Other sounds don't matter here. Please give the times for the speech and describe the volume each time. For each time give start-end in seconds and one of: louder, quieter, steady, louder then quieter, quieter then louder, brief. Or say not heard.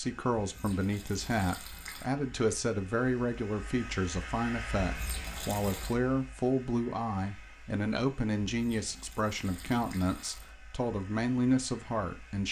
0.0-12.4 steady.